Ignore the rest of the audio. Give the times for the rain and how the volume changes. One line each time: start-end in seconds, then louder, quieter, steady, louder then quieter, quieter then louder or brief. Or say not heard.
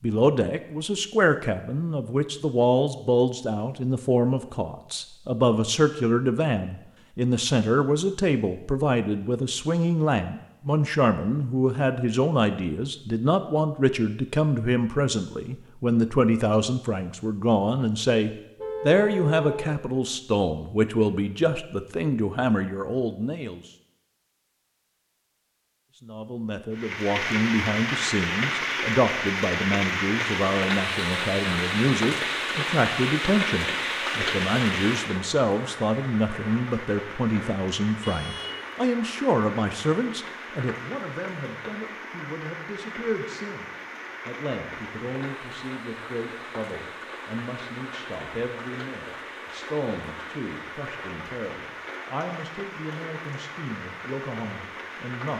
26.7-55.3 quieter.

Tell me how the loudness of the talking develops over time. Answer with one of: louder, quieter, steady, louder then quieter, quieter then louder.
quieter.